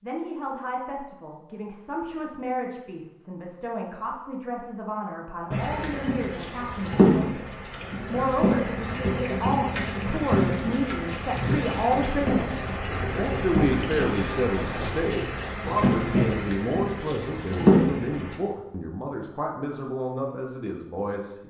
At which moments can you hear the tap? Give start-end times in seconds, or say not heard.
5.5-18.4.